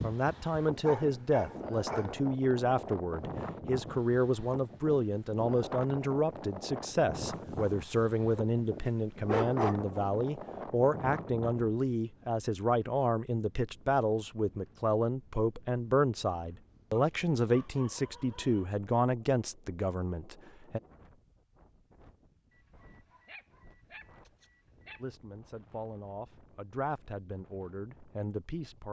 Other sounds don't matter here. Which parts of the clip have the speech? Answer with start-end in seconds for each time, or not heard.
0.0-20.8, 25.0-28.8.